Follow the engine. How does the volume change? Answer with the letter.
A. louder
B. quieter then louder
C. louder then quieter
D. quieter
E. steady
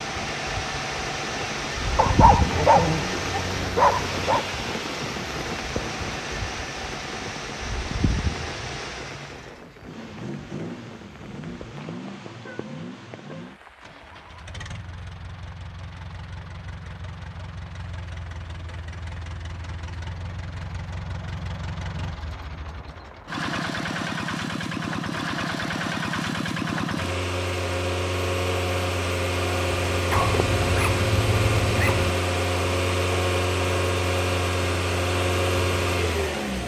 B.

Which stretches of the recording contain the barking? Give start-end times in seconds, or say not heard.
1.9-4.5, 30.1-32.1.